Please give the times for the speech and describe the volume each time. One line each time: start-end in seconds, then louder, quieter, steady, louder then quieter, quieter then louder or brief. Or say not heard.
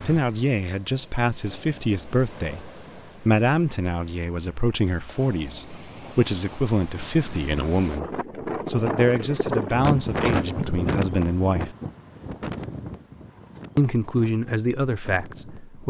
0.0-11.8 steady
13.8-15.8 brief.